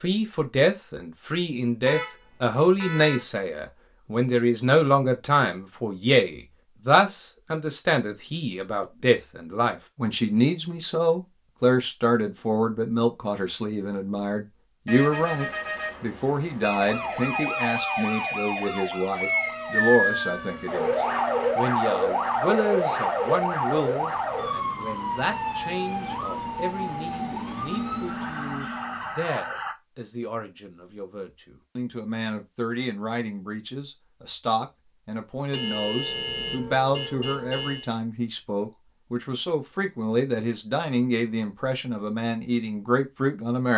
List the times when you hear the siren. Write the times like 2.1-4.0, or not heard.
16.6-29.8.